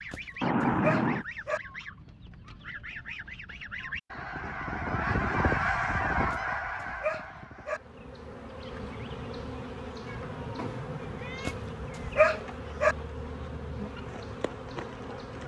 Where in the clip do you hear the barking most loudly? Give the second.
12 s.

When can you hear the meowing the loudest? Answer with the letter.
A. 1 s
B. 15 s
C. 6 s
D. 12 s
A.